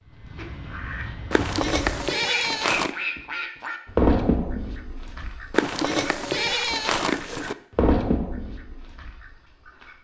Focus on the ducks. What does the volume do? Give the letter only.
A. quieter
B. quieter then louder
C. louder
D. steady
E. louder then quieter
E.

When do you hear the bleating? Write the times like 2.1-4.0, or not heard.
1.3-3.0, 5.5-7.5.